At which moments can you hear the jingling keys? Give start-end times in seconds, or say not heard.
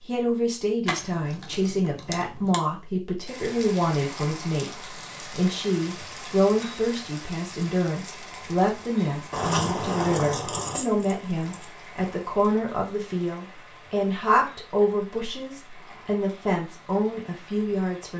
0.8-2.6, 9.3-11.7.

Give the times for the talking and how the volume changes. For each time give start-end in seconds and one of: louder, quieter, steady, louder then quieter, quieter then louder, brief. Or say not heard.
0.0-18.1 steady.